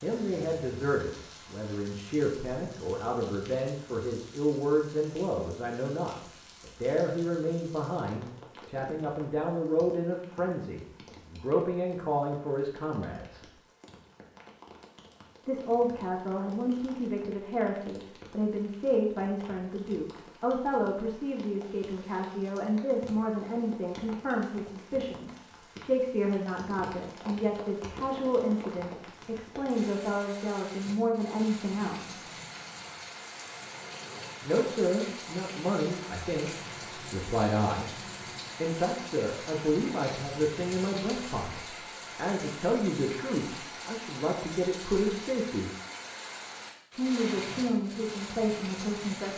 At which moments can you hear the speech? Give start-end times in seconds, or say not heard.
0.0-13.4, 15.4-32.2, 34.4-38.0, 38.6-45.7, 46.9-49.3.